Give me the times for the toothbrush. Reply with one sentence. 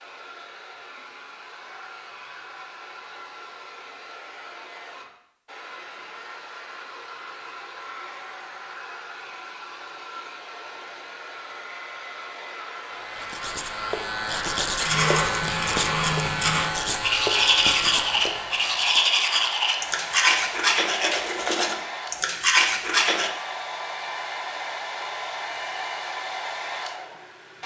You can hear the toothbrush from 14.8 to 23.3 s.